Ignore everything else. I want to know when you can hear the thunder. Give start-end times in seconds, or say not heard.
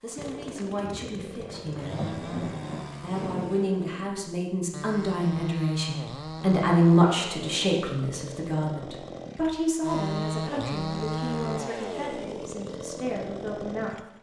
0.8-3.5.